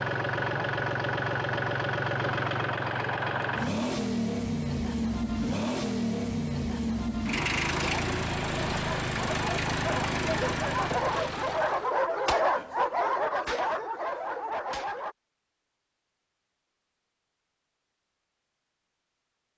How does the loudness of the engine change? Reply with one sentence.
The volume of the engine stays about the same.